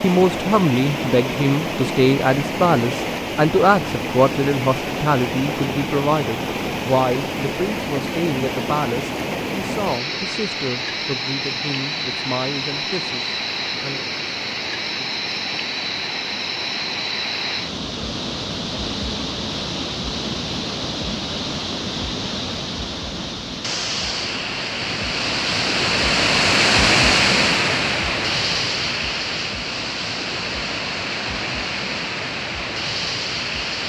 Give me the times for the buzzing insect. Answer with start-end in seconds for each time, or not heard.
not heard.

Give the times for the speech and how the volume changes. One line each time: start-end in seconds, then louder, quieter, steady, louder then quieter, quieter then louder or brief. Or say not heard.
0.0-14.0 quieter.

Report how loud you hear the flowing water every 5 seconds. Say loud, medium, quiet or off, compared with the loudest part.
medium, medium, medium, medium, medium, loud, medium.